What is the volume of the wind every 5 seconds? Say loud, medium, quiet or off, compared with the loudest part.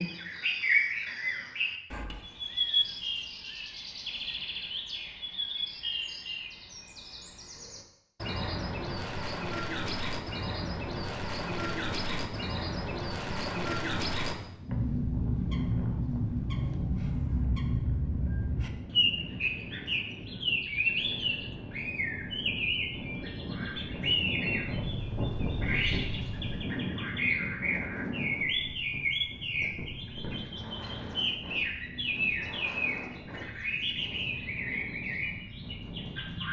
off, off, medium, medium, loud, loud, medium, medium.